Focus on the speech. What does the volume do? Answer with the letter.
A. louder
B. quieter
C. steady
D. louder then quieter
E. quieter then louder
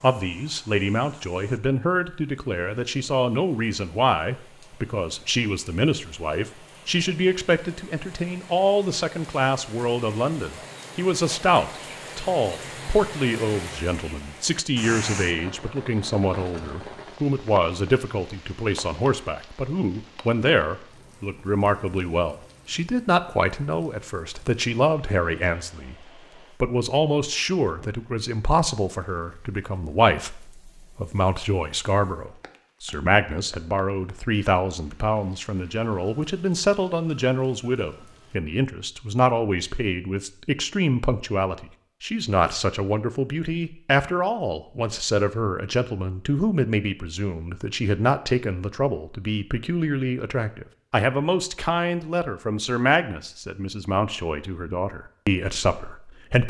C.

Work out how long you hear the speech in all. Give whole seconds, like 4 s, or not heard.
56 s.